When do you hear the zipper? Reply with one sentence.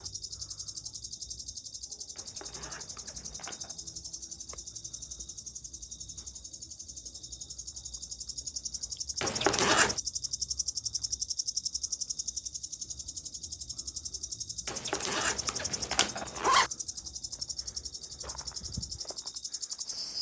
You can hear the zipper from 2.1 to 3.8 s, from 9.2 to 10.0 s and from 14.7 to 16.7 s.